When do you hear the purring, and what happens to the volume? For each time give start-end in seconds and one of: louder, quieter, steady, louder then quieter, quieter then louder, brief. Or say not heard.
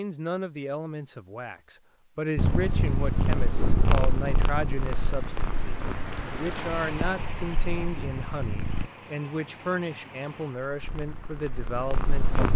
2.4-8.9 quieter
10.8-12.5 brief.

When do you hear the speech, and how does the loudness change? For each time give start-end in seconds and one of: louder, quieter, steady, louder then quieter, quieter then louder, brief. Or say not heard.
0.0-12.5 steady.